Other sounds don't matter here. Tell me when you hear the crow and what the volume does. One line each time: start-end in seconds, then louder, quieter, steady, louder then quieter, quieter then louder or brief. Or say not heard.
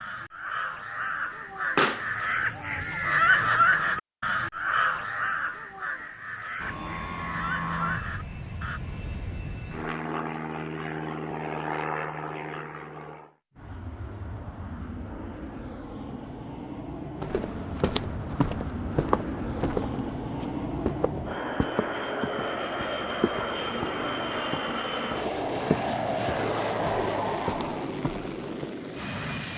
0.0-8.8 louder then quieter.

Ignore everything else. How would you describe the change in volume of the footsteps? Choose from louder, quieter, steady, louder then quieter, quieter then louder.
quieter.